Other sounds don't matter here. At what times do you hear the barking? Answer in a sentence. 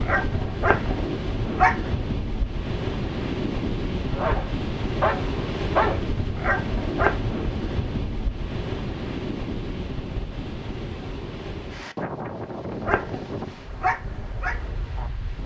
You can hear the barking from 0.0 to 1.9 s, from 4.1 to 7.3 s and from 12.8 to 15.1 s.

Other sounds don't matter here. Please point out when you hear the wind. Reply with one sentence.
The wind can be heard from 0.0 to 15.4 s.